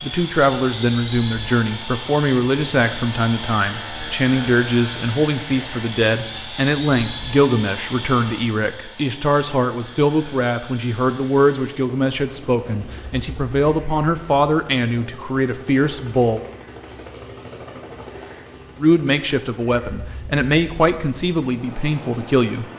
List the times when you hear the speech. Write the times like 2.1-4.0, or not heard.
0.0-16.4, 18.8-22.6.